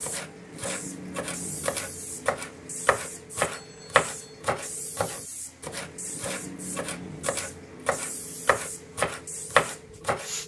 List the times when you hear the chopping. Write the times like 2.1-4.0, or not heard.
0.0-10.4.